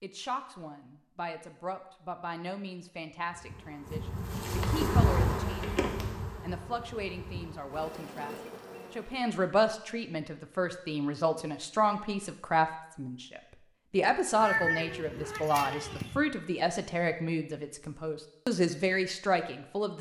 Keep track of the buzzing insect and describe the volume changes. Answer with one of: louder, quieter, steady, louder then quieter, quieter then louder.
louder then quieter.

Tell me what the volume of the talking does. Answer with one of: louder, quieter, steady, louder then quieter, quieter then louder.
louder.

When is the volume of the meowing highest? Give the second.
15 s.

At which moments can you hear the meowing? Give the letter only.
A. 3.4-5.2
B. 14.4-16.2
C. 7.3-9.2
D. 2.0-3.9
B.